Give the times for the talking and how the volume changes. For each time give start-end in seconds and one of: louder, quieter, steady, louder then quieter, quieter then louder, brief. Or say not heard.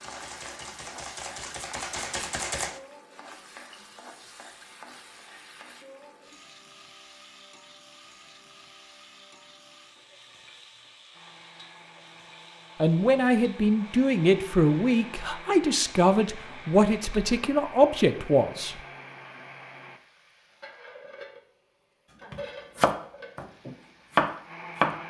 12.8-18.8 steady.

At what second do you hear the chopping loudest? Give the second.
24 s.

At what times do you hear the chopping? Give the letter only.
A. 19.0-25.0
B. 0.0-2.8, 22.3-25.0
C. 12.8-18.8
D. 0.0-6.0
B.